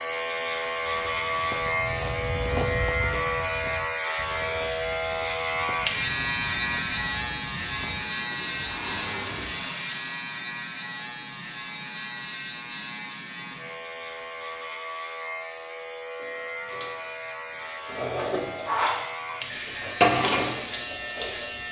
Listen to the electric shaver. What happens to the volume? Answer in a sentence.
The loudness of the electric shaver goes down.